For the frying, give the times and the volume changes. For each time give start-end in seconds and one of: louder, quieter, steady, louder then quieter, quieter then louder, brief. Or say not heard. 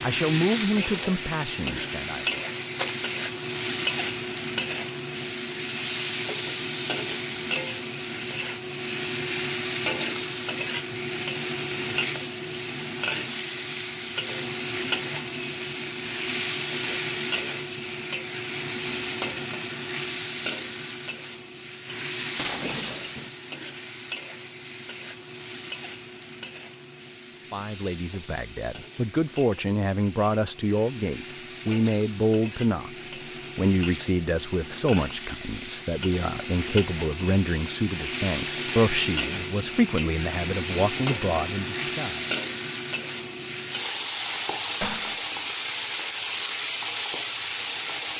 0.0-48.1 quieter then louder.